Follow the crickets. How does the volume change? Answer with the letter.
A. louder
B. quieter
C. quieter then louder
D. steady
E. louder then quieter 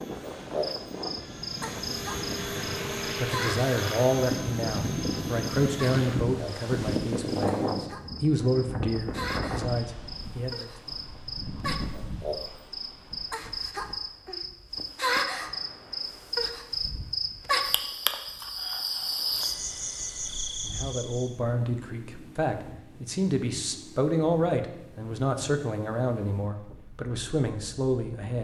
C.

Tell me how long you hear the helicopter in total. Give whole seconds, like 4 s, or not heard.
6 s.